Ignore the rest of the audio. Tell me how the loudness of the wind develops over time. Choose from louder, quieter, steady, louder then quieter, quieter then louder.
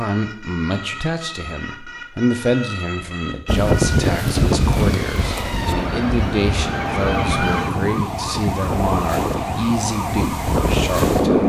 quieter then louder.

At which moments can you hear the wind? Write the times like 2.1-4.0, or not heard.
3.5-11.4.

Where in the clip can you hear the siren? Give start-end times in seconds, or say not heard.
0.0-11.4.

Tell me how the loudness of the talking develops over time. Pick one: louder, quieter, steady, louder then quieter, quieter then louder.
steady.